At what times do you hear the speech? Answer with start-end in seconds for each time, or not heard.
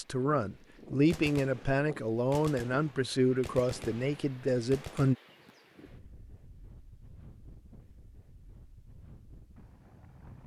0.0-5.2.